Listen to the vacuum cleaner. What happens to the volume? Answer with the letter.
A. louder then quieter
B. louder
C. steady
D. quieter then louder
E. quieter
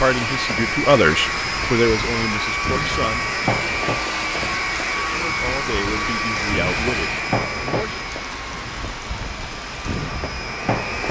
E.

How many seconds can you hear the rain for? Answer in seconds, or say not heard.
11 s.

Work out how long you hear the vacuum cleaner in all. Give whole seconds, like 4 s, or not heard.
11 s.